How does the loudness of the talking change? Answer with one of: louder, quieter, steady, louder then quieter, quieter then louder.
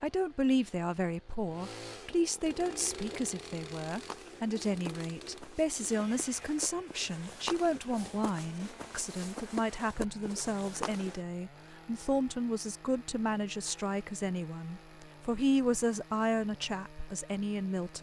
steady.